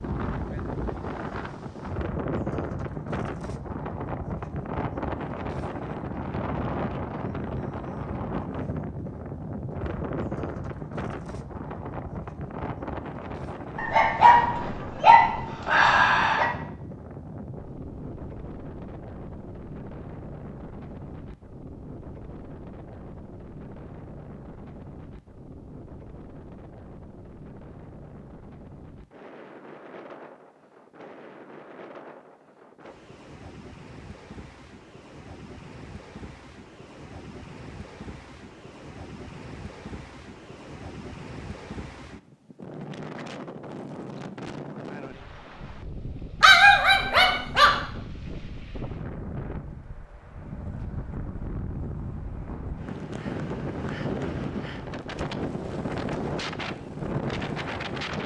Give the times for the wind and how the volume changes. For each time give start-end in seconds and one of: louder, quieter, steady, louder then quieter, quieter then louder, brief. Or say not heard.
0.0-58.2 quieter then louder.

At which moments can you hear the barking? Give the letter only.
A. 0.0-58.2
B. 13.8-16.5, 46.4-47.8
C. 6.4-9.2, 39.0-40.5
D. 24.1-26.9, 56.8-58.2
B.